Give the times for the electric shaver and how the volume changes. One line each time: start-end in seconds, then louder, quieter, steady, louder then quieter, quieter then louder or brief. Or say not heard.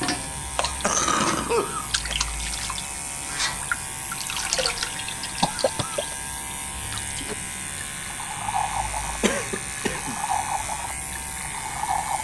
0.0-12.2 steady.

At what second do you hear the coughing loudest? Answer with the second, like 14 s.
1 s.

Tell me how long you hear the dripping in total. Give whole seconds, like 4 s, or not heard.
12 s.